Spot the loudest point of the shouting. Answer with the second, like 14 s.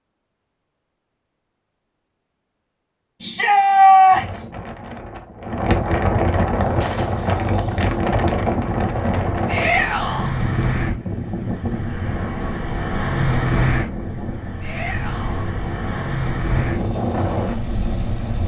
4 s.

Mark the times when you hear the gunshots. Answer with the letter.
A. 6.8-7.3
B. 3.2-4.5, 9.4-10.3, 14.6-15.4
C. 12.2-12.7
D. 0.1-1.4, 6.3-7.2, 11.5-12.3
A.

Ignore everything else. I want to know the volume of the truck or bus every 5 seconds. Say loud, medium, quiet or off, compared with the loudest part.
off, medium, loud, loud.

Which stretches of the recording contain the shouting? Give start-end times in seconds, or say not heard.
3.2-4.5, 9.4-10.3, 14.6-15.4.